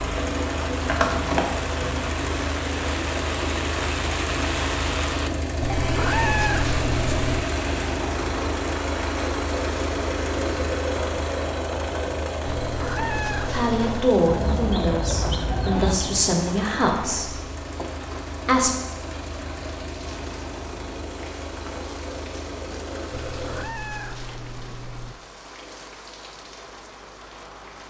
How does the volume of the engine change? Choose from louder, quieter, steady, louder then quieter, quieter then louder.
quieter.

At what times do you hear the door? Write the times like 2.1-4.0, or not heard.
not heard.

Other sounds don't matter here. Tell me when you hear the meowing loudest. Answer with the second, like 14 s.
6 s.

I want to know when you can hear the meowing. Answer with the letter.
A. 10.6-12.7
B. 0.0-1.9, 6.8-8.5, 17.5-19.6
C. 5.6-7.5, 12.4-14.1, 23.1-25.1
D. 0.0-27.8
C.